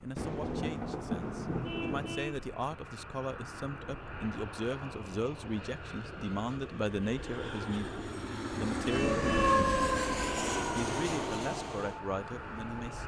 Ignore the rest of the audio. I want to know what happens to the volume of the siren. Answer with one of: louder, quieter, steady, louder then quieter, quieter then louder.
quieter.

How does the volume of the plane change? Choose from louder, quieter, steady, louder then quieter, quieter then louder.
louder.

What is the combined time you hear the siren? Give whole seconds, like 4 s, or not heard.
4 s.